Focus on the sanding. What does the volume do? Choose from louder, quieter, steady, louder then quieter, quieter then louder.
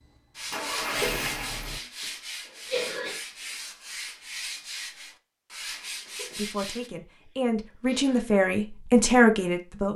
steady.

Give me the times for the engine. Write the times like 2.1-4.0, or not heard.
0.0-1.8.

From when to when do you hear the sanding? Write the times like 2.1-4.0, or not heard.
0.3-6.9.